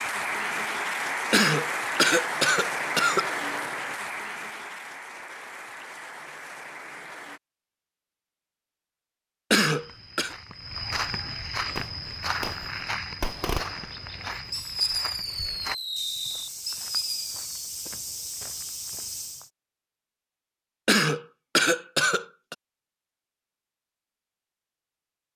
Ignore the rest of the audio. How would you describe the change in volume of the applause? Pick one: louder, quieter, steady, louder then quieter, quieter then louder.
quieter.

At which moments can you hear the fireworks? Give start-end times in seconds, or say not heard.
11.8-17.4.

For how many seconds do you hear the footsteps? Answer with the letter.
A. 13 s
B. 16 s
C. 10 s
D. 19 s
C.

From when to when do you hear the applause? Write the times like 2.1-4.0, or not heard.
0.0-7.4.